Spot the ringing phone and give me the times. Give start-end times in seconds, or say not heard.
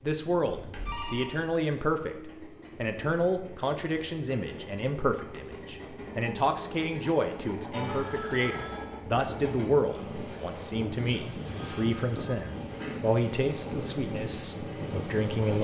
0.5-1.4, 7.7-8.8, 11.6-13.1.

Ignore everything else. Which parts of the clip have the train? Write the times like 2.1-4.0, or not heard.
0.0-15.6.